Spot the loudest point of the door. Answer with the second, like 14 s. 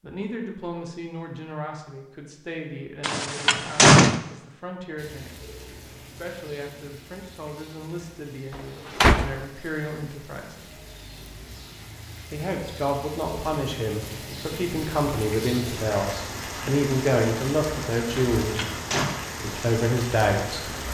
4 s.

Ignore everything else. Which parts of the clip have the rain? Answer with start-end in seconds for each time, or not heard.
5.0-20.8.